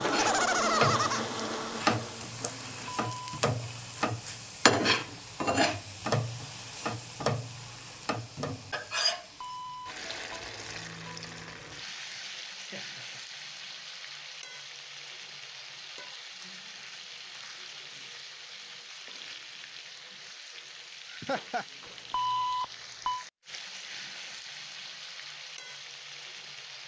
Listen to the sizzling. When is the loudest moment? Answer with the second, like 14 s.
5 s.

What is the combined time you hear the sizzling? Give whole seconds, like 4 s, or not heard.
27 s.